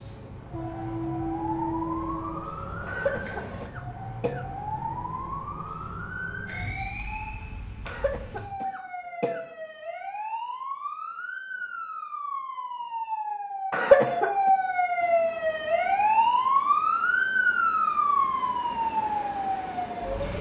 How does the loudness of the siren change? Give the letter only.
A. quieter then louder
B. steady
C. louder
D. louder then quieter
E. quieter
C.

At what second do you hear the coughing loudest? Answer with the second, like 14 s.
14 s.